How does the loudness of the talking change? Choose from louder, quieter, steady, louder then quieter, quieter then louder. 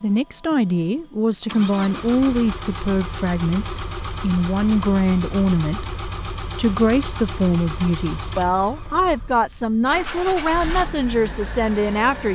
steady.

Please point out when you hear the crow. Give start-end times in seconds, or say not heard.
not heard.